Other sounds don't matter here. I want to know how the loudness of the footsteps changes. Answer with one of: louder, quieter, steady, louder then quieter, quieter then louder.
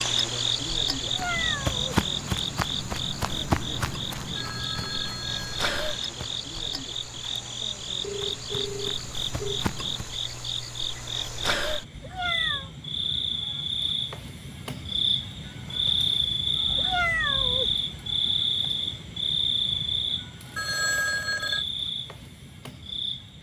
quieter then louder.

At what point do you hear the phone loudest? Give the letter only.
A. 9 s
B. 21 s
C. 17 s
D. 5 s
B.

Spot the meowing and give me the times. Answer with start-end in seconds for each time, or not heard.
0.9-1.9, 11.9-12.7, 16.6-17.8.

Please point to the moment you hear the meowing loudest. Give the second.
17 s.